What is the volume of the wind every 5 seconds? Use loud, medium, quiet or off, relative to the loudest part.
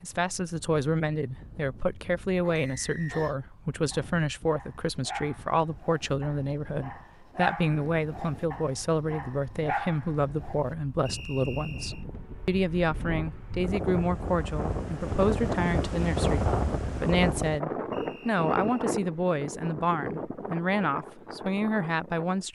quiet, quiet, medium, loud, medium.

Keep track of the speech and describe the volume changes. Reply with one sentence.
The loudness of the speech stays about the same.